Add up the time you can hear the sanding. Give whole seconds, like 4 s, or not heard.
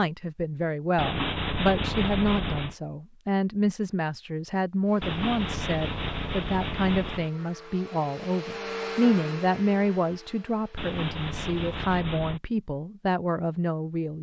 6 s.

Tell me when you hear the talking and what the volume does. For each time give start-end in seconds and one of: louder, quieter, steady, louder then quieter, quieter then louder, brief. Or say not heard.
0.0-14.1 steady.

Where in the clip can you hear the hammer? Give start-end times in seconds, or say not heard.
not heard.